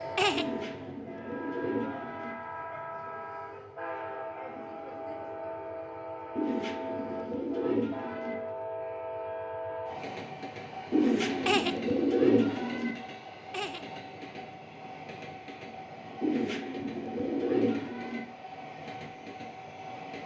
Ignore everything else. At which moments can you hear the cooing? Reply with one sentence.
The cooing can be heard from 0.3 to 2.4 s, from 6.3 to 8.3 s, from 10.9 to 12.9 s and from 16.2 to 18.2 s.